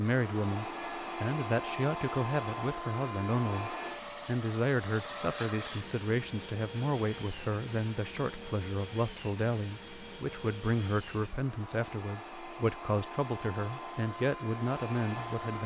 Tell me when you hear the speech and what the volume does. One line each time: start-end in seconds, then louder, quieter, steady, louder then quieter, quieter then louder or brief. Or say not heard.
0.0-15.6 steady.